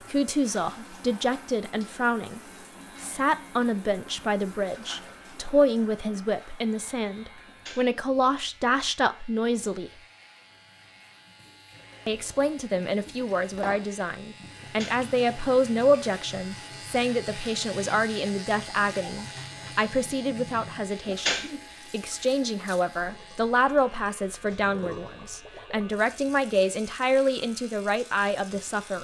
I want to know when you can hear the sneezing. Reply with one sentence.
You can hear the sneezing from 7.5 to 8.0 s, from 14.6 to 15.1 s and from 21.1 to 21.6 s.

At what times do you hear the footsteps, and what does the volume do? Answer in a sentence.
The footsteps can't be heard in this clip.